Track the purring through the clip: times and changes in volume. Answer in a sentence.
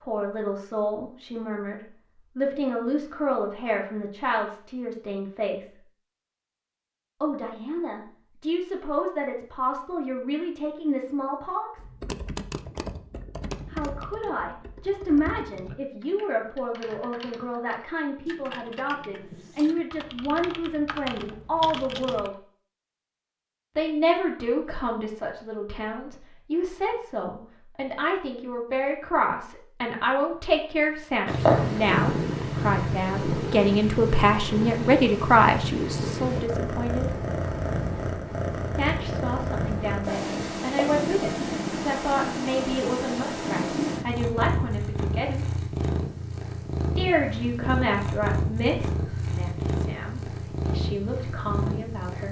You can hear the purring from 31.2 to 52.2 s, at a steady volume.